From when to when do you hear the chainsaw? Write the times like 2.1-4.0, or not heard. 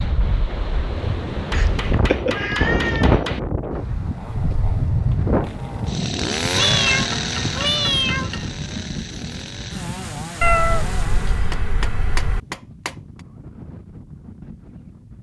3.8-11.5.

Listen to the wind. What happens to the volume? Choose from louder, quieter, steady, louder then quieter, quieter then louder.
quieter.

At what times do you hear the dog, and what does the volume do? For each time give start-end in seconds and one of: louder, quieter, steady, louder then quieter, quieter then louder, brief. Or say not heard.
not heard.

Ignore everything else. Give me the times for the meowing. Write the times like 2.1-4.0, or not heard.
1.5-3.1, 6.5-8.3, 10.4-12.4.